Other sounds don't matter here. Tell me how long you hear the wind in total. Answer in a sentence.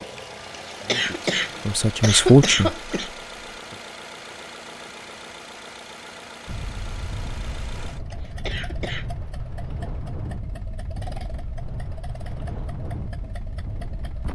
You can hear the wind for 8 seconds altogether.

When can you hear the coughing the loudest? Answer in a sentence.
The loudest moment of the coughing is at 2 seconds.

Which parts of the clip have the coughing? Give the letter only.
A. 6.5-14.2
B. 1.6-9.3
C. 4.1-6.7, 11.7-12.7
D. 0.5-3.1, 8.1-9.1
D.